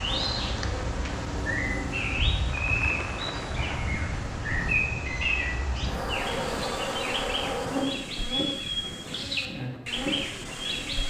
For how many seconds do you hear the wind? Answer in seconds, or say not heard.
9 s.